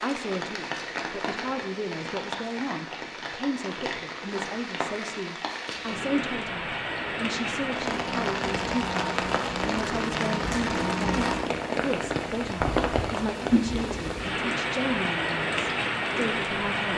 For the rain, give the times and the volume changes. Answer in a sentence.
You can hear the rain from 0.0 to 16.9 s, getting louder.